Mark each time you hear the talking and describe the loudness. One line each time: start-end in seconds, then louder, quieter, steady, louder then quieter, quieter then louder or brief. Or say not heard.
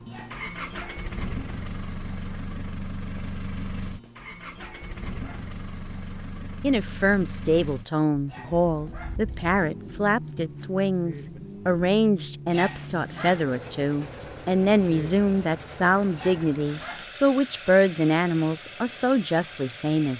6.6-20.1 steady.